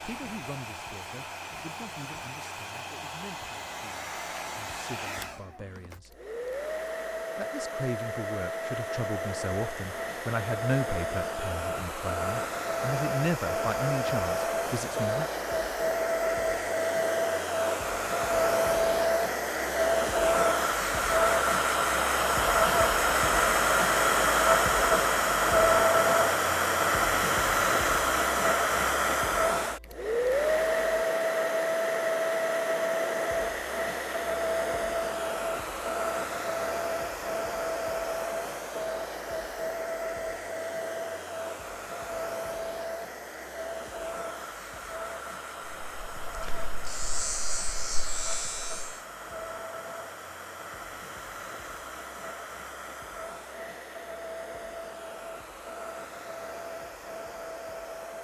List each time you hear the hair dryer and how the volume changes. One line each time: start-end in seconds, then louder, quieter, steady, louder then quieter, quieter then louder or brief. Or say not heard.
0.0-58.1 louder then quieter.